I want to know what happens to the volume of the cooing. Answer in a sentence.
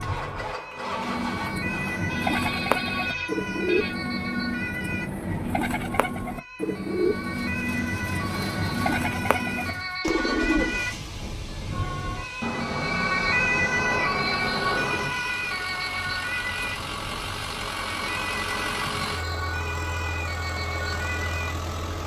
The volume of the cooing stays about the same.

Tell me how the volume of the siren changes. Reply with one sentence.
The loudness of the siren goes up, then down.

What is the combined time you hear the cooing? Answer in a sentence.
You can hear the cooing for 10 seconds altogether.